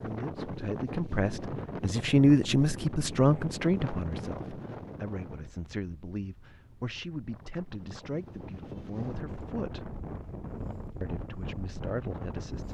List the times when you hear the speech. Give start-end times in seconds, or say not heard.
0.0-9.9, 11.0-12.6.